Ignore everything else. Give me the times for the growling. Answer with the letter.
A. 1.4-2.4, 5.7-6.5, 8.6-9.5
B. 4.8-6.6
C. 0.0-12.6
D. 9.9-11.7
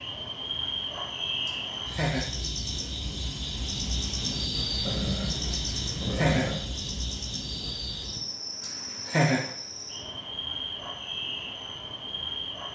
B.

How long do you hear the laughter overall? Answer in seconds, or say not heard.
3 s.